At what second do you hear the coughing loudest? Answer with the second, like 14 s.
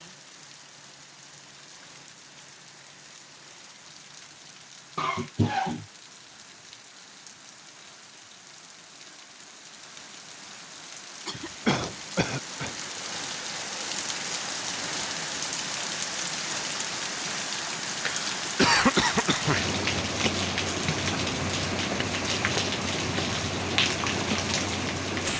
19 s.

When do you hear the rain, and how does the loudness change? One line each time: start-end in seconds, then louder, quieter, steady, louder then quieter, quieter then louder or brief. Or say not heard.
0.0-25.3 louder.